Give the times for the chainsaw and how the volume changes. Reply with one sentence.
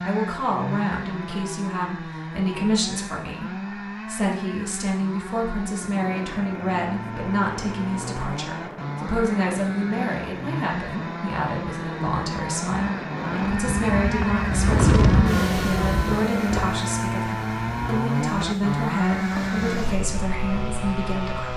The chainsaw can be heard from 0.0 to 21.5 s, getting louder.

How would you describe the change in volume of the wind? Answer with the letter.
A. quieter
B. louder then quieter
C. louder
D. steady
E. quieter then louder
B.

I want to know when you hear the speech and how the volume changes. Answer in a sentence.
The speech can be heard from 0.0 to 21.5 s, at a steady volume.